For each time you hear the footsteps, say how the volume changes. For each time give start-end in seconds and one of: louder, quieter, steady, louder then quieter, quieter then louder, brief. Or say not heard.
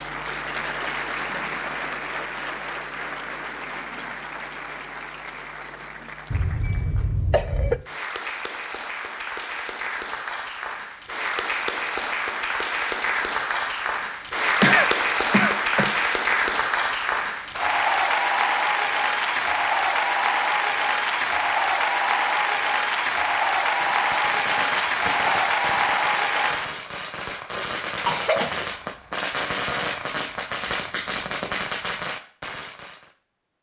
not heard.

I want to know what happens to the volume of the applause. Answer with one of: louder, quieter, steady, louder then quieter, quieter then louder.
louder.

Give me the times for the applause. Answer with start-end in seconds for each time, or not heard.
0.0-26.8.